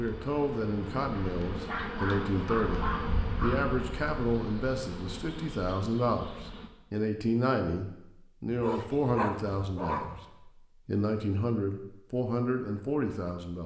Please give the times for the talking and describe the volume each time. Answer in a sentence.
The talking can be heard from 0.0 to 13.6 s, at a steady volume.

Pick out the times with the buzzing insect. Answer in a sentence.
The buzzing insect can be heard from 0.0 to 6.7 s.